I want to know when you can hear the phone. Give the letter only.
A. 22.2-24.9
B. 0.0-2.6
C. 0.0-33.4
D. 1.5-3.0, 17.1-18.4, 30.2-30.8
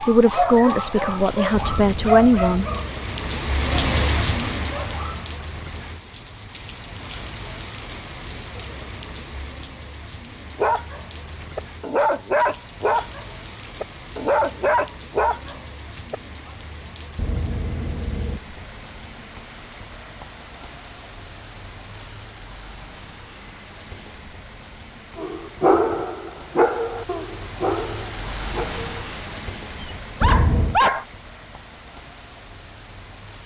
D.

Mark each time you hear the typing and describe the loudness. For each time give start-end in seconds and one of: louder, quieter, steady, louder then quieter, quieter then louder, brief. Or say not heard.
not heard.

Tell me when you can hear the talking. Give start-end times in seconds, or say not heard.
0.0-2.6.